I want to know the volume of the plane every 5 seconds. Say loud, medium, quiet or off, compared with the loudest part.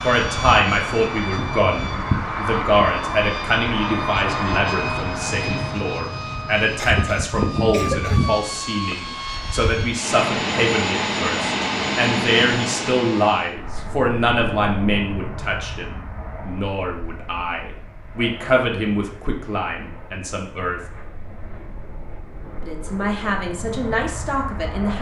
loud, loud, loud, quiet, quiet.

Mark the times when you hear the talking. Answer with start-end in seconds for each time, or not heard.
0.0-20.8, 22.6-24.9.